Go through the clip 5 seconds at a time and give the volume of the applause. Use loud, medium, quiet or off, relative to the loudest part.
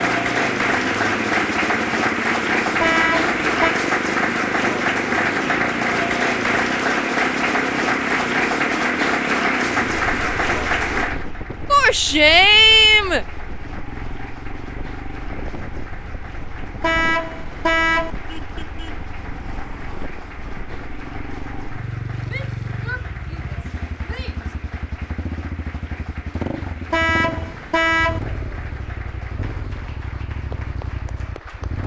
loud, loud, medium, quiet, quiet, quiet, quiet.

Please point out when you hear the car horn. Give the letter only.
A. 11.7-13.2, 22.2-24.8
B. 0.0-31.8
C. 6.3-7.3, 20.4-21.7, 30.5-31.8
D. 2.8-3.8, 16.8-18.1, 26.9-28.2
D.